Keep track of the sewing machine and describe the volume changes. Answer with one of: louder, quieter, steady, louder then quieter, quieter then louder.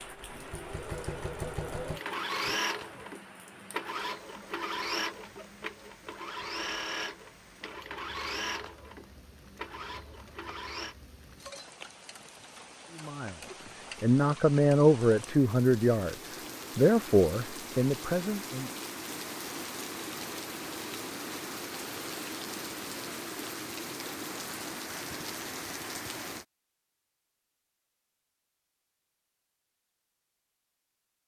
quieter.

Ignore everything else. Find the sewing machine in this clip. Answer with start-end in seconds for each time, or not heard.
0.0-10.9.